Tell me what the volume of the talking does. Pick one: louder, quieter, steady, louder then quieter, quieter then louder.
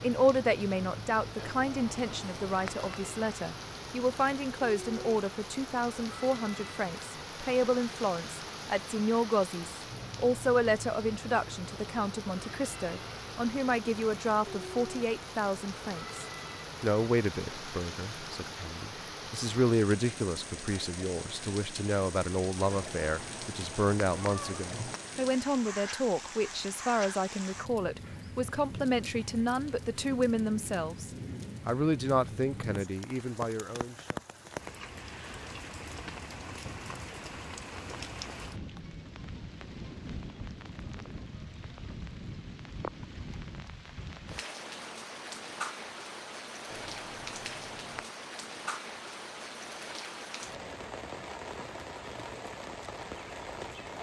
steady.